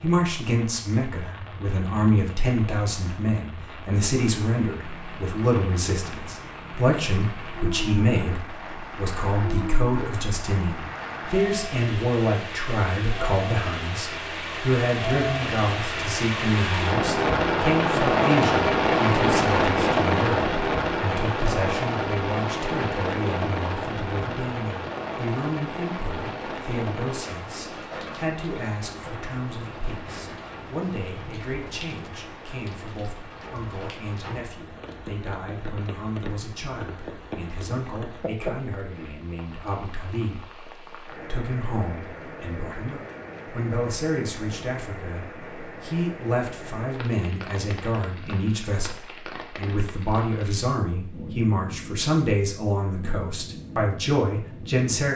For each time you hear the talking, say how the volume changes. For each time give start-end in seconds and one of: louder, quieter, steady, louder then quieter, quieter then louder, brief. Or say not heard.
0.0-55.1 quieter then louder.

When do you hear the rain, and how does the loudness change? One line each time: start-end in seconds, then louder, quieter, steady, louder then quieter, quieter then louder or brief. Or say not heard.
0.0-55.1 louder then quieter.